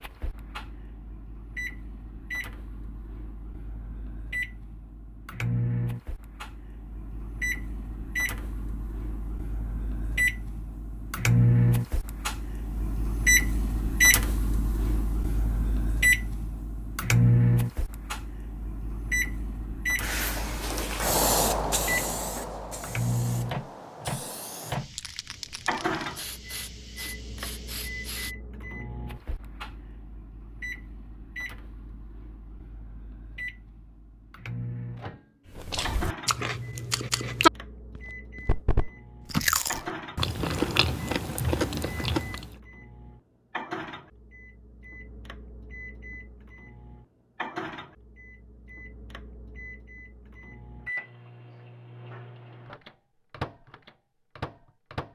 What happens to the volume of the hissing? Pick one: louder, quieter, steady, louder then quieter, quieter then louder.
quieter.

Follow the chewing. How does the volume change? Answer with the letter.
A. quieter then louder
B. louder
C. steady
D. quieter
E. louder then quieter
E.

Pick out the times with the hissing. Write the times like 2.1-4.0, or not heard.
20.0-28.4.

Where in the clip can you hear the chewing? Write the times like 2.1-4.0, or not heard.
35.5-42.5.